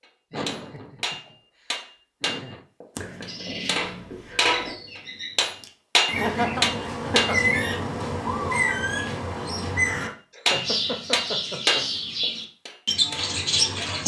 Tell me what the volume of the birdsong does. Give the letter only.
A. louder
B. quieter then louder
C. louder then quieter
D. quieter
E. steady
A.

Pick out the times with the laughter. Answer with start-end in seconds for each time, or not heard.
0.3-1.4, 2.2-2.6, 6.1-7.4, 10.3-11.9.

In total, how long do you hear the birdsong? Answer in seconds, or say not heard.
11 s.